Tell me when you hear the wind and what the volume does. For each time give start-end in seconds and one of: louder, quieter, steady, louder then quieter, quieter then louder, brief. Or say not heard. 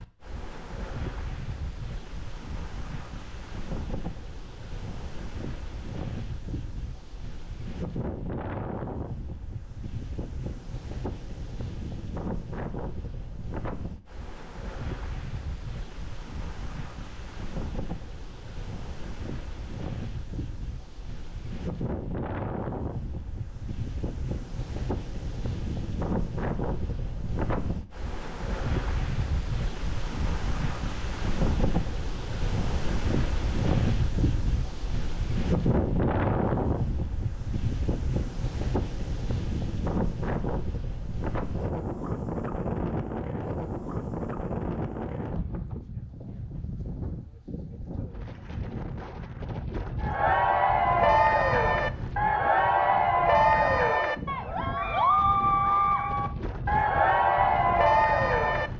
0.0-58.7 louder then quieter.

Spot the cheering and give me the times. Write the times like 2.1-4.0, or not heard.
50.0-58.7.